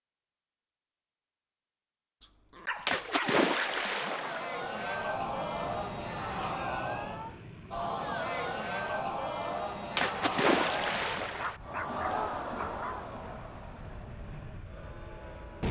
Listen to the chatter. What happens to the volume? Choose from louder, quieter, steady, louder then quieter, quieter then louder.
quieter.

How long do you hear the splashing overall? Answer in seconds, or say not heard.
3 s.